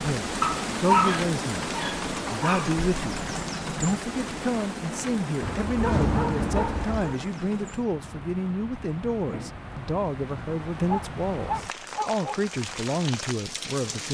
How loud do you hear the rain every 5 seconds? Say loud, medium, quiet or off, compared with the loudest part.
loud, medium, medium.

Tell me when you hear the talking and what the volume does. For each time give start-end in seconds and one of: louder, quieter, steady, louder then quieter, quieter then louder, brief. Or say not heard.
0.0-14.0 steady.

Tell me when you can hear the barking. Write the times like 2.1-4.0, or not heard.
0.4-2.7, 5.4-7.2, 10.8-12.4.